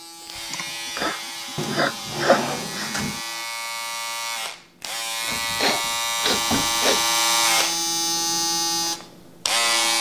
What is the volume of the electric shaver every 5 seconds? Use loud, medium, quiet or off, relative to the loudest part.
medium, loud.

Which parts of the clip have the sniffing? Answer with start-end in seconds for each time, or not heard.
0.5-3.0, 5.6-7.0.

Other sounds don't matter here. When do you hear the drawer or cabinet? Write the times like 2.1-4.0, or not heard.
1.6-3.2, 5.2-7.0.